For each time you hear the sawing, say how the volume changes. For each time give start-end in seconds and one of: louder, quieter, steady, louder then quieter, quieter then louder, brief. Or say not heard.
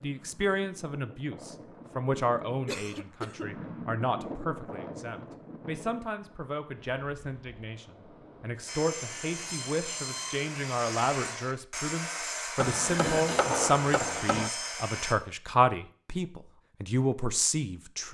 8.7-15.2 steady.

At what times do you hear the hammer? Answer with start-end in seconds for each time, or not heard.
12.6-14.5.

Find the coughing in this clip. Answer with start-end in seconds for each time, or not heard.
2.6-3.5, 12.8-13.5.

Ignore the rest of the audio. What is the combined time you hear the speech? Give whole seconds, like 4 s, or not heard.
18 s.